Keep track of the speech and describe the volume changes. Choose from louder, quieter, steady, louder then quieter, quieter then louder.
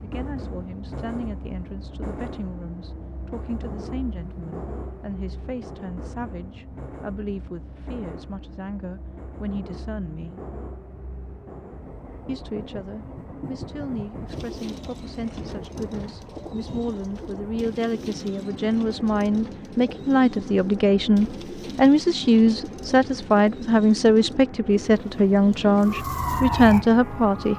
louder.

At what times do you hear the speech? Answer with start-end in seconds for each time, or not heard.
0.0-10.3, 12.2-27.5.